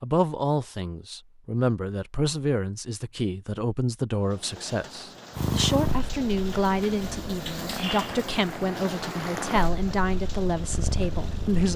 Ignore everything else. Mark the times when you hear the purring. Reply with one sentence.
The purring can be heard from 5.3 to 11.7 s.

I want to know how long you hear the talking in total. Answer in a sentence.
The talking can be heard for 12 seconds in total.